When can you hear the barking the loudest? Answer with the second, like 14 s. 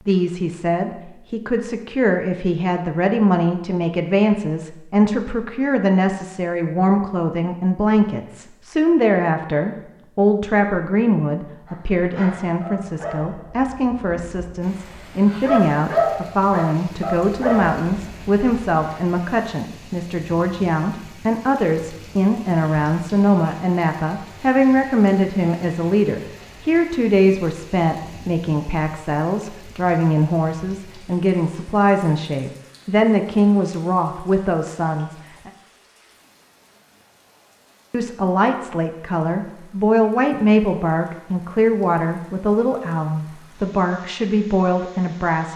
16 s.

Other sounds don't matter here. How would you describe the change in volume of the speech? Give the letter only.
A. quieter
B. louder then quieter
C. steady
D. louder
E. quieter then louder
C.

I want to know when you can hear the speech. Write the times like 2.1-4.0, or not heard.
0.1-35.5, 37.9-45.5.